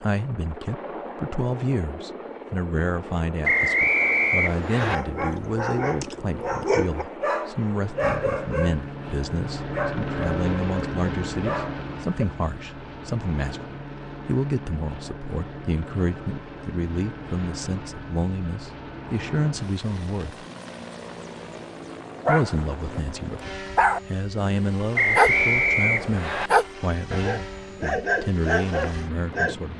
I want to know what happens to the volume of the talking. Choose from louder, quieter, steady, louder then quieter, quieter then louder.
steady.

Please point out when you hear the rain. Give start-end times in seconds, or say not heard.
not heard.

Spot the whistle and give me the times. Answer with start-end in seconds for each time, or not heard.
3.5-5.0, 24.9-26.5.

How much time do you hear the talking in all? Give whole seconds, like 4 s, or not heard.
27 s.